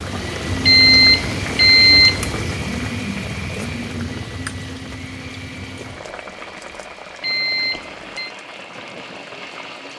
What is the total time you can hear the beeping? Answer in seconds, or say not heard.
3 s.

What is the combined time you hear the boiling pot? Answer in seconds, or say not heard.
10 s.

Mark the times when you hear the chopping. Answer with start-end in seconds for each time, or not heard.
not heard.